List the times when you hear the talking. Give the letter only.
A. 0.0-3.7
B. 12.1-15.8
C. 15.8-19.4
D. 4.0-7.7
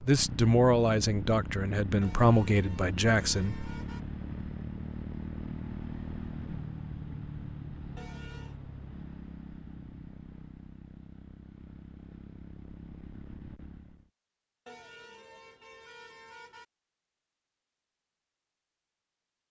A.